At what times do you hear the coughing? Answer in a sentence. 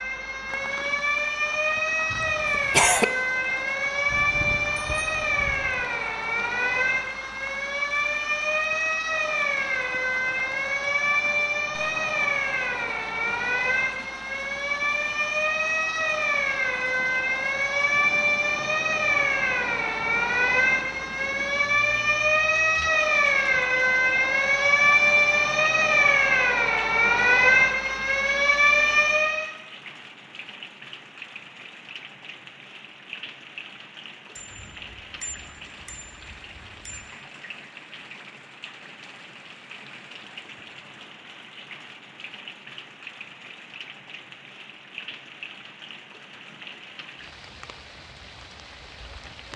You can hear the coughing from 2.1 to 3.0 s.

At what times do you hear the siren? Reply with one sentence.
The siren can be heard from 0.0 to 29.5 s.